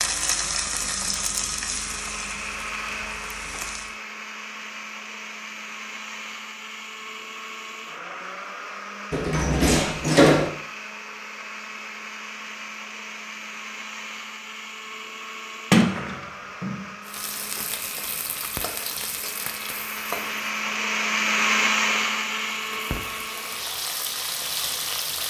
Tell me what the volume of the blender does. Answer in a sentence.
The loudness of the blender goes up.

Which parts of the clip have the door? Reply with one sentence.
You can hear the door from 9.1 to 10.5 s and from 15.7 to 16.9 s.